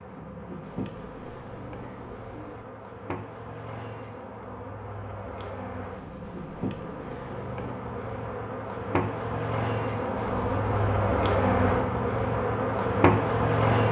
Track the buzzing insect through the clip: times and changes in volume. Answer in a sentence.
The buzzing insect can be heard from 0.0 to 13.8 s, getting louder.